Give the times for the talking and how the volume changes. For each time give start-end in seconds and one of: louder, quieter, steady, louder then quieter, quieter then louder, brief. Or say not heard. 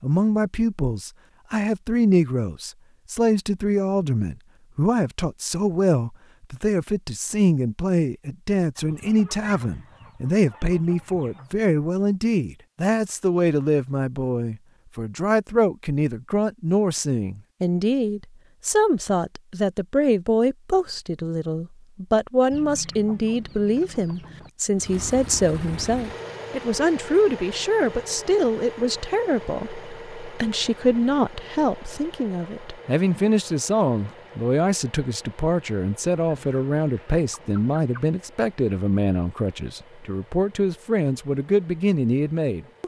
0.0-42.8 steady.